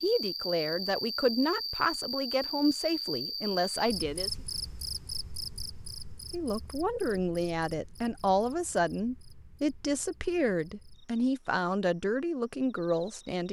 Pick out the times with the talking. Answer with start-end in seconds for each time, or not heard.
0.0-4.3, 6.3-13.4.